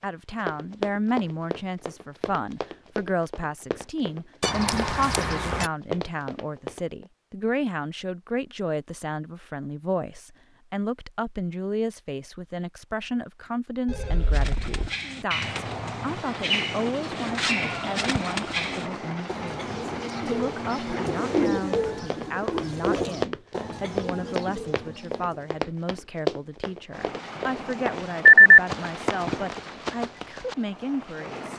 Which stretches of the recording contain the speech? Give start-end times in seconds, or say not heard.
0.0-31.5.